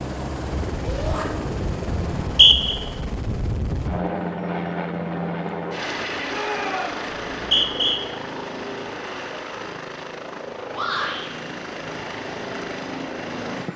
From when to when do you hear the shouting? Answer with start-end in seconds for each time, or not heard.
0.8-1.2, 6.2-7.0, 10.7-11.3.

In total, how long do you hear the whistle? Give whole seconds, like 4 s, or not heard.
2 s.